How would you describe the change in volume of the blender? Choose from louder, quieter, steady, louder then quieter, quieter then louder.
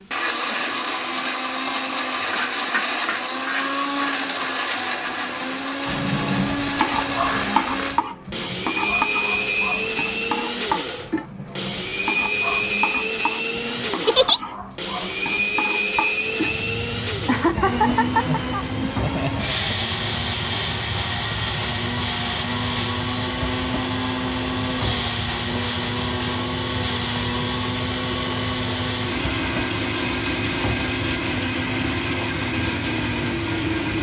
steady.